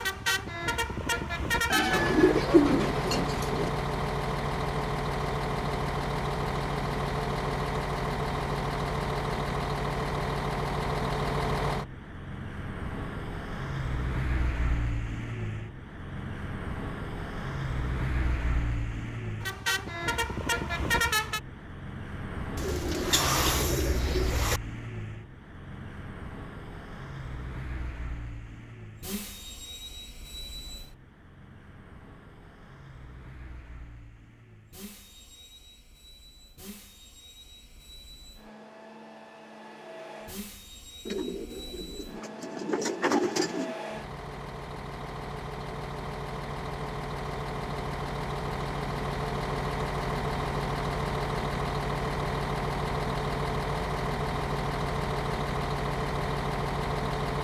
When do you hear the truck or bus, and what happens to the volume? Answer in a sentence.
The truck or bus can be heard from 0.0 to 57.4 s, getting quieter then louder.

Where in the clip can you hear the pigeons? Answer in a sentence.
You can hear the pigeons from 1.7 to 3.7 s, from 22.6 to 24.6 s and from 41.0 to 43.8 s.